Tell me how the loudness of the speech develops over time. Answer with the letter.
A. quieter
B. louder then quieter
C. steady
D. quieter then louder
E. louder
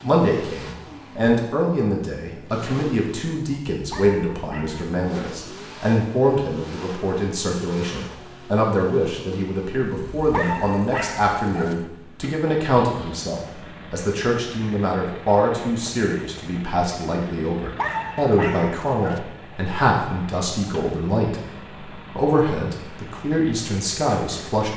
C.